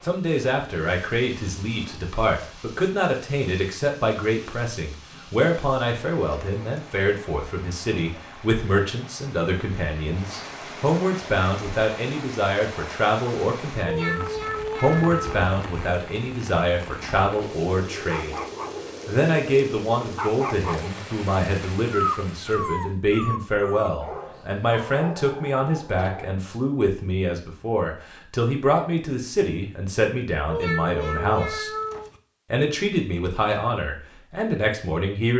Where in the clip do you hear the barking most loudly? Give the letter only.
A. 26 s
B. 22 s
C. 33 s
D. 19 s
B.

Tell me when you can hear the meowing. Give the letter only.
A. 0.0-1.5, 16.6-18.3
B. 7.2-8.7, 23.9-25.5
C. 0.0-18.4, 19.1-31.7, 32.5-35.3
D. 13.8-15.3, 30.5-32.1
D.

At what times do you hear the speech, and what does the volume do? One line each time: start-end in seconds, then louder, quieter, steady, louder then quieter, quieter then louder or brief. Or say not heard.
0.0-18.4 steady
19.1-31.7 steady
32.5-35.3 brief.